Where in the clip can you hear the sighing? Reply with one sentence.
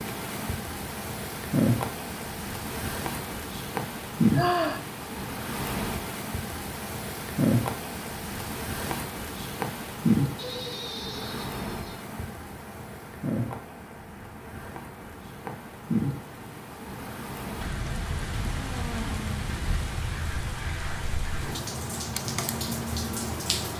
You can hear the sighing from 4.3 to 4.8 s, from 10.3 to 12.1 s and from 18.6 to 19.4 s.